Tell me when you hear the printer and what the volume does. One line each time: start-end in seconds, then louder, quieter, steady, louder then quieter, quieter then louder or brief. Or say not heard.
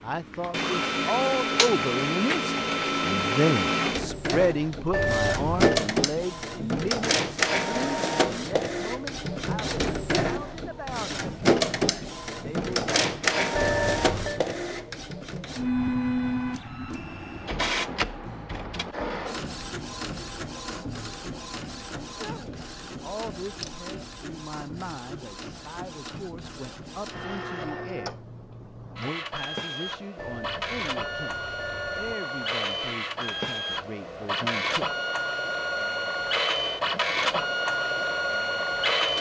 0.1-39.1 quieter then louder.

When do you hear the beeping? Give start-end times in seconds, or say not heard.
4.9-5.8, 13.6-14.4, 30.1-32.1.